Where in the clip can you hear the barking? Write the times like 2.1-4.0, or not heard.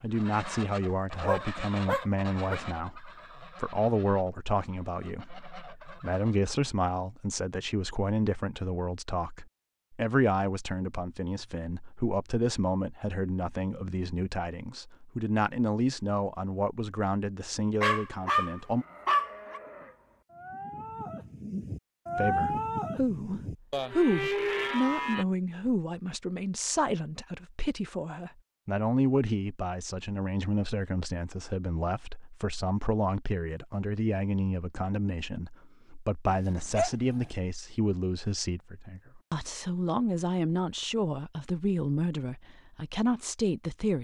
1.1-2.5, 17.8-19.6, 36.2-37.4.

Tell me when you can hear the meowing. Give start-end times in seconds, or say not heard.
not heard.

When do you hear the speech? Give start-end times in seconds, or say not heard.
0.0-18.9, 22.1-43.9.